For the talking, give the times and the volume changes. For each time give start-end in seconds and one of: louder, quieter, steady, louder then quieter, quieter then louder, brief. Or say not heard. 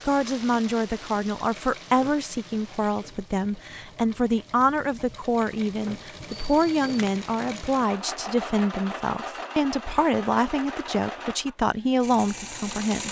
0.1-13.0 steady.